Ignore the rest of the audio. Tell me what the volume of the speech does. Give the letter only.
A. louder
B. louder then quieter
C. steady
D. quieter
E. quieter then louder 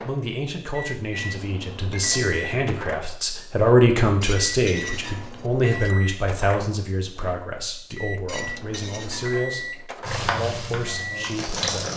B.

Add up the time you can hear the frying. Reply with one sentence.
The frying can be heard for 2 seconds in total.